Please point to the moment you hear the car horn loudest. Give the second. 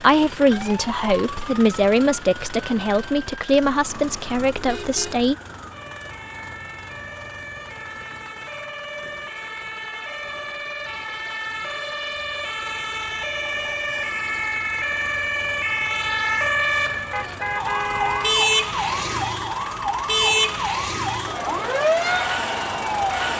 18 s.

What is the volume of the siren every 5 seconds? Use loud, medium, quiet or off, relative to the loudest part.
quiet, quiet, medium, loud, loud.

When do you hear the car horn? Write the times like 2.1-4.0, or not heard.
4.5-5.2, 17.1-18.4.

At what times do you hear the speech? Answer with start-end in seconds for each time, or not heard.
0.0-5.3.